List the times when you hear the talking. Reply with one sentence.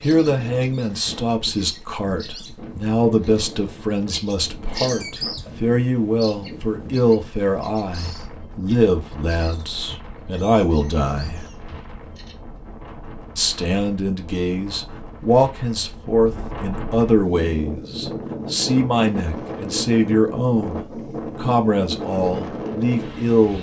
You can hear the talking from 0.0 to 11.4 s and from 13.3 to 23.5 s.